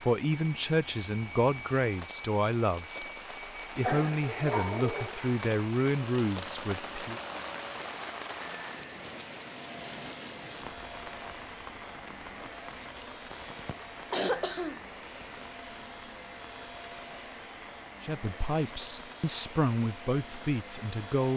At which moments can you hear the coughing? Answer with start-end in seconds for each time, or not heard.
3.0-5.2, 13.3-15.2.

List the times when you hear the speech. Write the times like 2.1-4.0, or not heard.
0.0-3.0, 3.8-7.2, 18.0-21.3.